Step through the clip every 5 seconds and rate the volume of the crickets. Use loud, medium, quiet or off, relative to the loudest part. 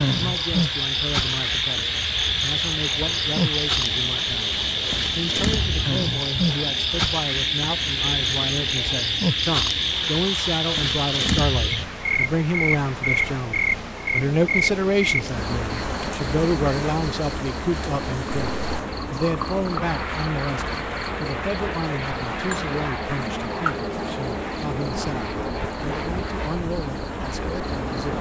loud, loud, loud, medium, medium, medium.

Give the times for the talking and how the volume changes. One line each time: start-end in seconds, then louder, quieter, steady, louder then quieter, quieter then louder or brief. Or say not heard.
0.1-28.1 louder then quieter.